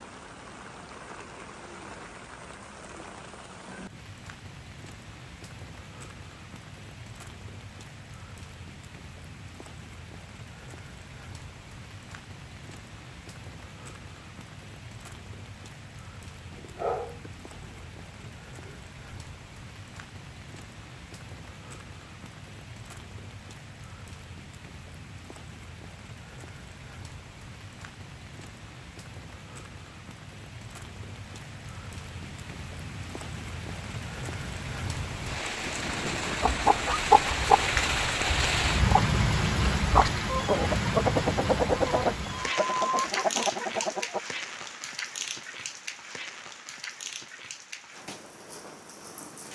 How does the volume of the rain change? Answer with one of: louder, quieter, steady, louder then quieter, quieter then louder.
louder.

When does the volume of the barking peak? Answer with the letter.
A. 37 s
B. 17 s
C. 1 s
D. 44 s
B.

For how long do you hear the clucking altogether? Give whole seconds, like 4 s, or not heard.
8 s.